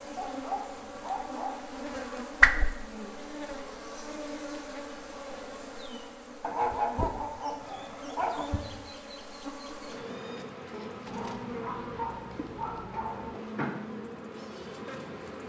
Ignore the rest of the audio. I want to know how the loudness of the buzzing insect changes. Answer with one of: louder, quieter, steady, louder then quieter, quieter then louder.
steady.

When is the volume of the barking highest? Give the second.
7 s.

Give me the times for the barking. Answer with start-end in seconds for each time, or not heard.
0.1-1.6, 6.4-8.4, 11.1-13.4.